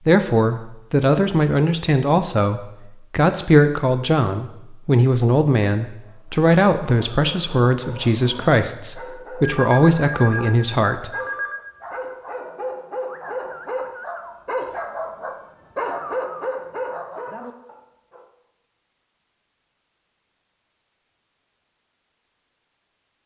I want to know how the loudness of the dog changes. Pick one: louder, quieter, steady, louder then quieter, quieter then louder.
louder.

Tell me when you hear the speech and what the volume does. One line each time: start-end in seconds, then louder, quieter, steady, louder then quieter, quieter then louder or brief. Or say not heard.
0.1-11.1 steady.